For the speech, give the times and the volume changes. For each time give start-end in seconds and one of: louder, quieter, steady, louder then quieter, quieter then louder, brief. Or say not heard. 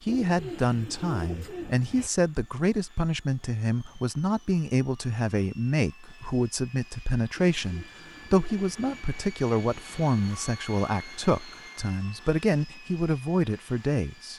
0.0-14.3 steady.